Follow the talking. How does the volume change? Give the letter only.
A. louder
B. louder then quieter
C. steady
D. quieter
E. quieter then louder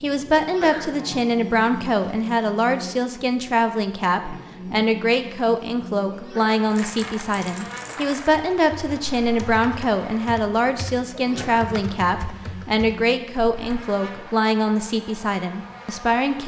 C.